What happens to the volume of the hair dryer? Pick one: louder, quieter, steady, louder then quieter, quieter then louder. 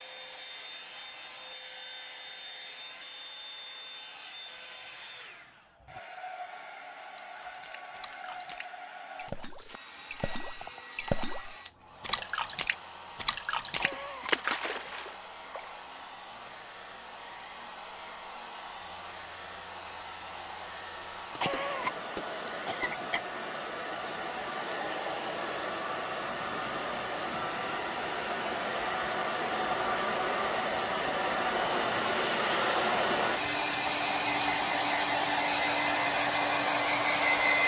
louder.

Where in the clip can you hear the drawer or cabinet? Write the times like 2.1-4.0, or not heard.
not heard.